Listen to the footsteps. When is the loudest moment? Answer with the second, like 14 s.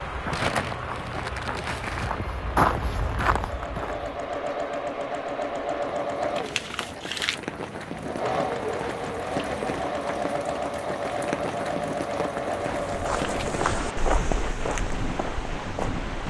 3 s.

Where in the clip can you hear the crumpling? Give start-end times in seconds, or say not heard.
0.3-2.1, 6.3-7.4, 13.2-13.6.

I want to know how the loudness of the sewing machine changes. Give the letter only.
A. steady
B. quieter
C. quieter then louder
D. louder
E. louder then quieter
A.